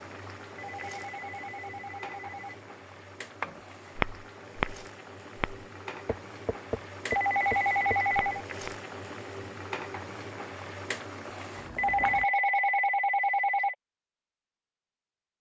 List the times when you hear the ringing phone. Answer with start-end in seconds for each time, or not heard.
0.6-2.5, 7.1-8.4, 11.8-13.8.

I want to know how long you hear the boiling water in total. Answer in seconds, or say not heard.
12 s.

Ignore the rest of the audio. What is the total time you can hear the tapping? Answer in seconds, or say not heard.
5 s.